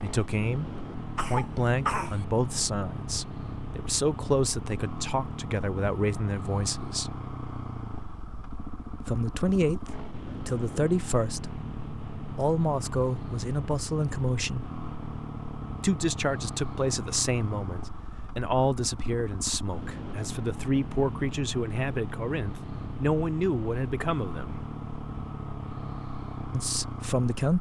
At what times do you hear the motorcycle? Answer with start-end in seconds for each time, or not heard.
0.0-27.5.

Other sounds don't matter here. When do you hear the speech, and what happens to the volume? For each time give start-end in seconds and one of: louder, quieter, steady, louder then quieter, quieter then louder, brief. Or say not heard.
0.0-7.2 steady
9.0-11.6 brief
12.3-14.7 brief
15.8-24.6 steady
26.5-27.5 brief.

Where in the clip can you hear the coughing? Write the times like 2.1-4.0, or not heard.
1.1-2.2.